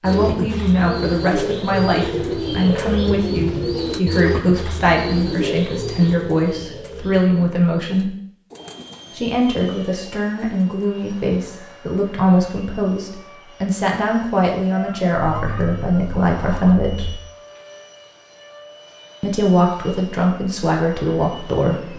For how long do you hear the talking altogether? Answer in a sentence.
You can hear the talking for 19 seconds altogether.